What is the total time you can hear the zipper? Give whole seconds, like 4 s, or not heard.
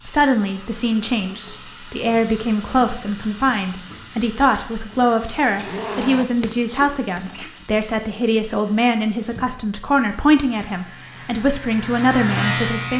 2 s.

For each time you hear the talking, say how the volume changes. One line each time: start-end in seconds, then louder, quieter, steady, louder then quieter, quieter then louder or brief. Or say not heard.
0.1-12.9 steady.